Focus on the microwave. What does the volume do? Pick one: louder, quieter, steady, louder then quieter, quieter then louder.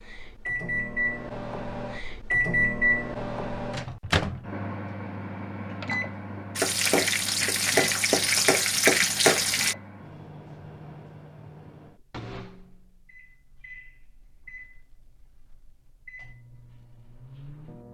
quieter.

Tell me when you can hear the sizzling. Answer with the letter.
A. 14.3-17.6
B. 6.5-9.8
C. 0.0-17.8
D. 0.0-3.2
B.